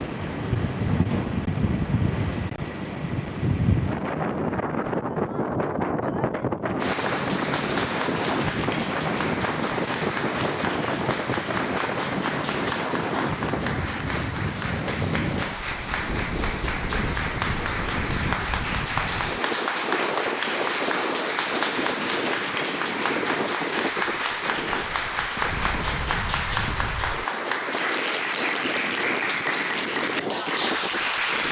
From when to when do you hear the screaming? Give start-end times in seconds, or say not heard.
not heard.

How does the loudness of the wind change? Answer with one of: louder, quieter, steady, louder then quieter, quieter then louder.
quieter.